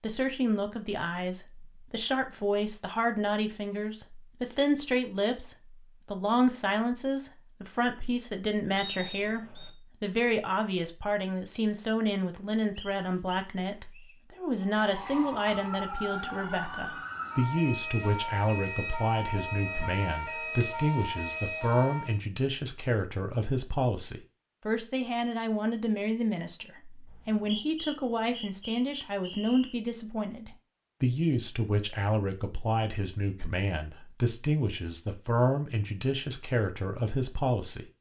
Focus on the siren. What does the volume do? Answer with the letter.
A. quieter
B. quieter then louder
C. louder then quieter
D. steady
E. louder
D.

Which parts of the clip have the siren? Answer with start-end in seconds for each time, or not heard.
14.6-22.2.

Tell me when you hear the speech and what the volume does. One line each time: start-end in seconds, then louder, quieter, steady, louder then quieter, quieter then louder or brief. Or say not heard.
0.0-37.9 steady.